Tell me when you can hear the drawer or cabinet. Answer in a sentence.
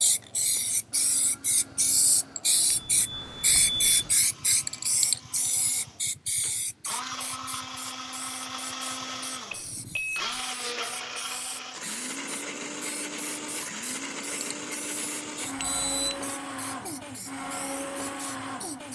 The drawer or cabinet can't be heard in this clip.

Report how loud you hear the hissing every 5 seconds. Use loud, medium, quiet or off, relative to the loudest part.
loud, medium, quiet, quiet.